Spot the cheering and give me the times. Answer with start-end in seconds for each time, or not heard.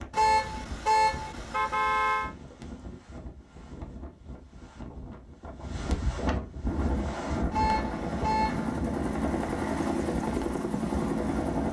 not heard.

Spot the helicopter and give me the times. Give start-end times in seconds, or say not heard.
6.7-11.6.